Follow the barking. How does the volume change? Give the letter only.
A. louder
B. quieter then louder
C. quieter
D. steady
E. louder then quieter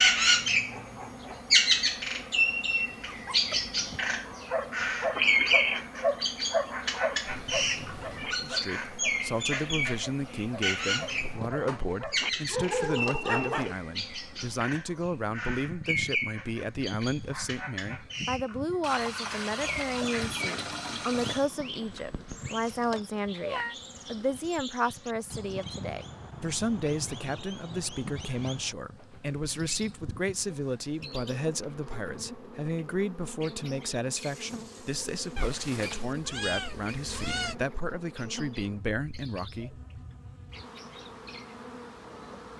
B.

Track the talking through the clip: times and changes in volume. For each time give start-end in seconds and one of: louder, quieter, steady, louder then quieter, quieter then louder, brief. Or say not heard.
8.2-40.0 steady.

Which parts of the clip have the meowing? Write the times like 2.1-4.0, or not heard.
7.2-8.3, 22.9-23.8, 35.4-37.5.